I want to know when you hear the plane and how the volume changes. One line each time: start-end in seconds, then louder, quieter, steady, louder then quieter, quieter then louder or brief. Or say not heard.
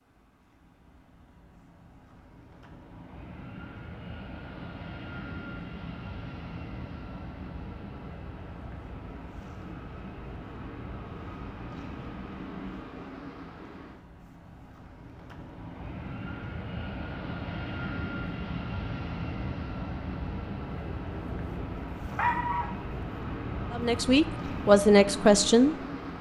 0.0-26.1 louder.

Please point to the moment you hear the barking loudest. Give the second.
22 s.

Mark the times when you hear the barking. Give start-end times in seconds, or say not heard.
20.9-22.6.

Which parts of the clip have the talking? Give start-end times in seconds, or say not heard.
23.7-25.8.